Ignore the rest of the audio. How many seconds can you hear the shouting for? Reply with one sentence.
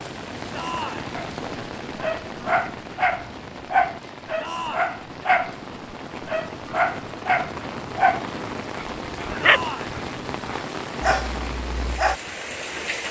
You can hear the shouting for 2 seconds altogether.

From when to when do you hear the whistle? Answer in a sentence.
The whistle can't be heard in this clip.